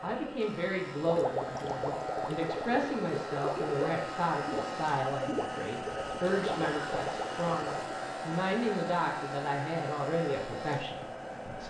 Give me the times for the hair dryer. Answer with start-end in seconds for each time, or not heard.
0.0-11.6.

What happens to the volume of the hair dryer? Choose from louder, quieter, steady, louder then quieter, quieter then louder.
steady.